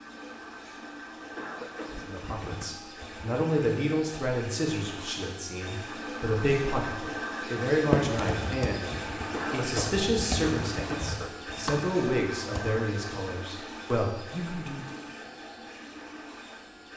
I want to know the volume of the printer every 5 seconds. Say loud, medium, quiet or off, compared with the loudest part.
medium, loud, loud, medium.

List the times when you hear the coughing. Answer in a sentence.
The coughing can be heard from 1.4 to 2.6 s and from 9.3 to 11.3 s.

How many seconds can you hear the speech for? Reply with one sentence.
You can hear the speech for 13 seconds altogether.